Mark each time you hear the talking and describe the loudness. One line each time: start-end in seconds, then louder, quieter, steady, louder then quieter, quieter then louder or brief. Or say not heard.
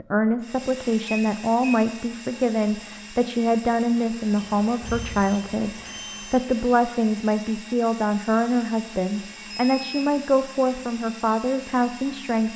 0.0-12.5 steady.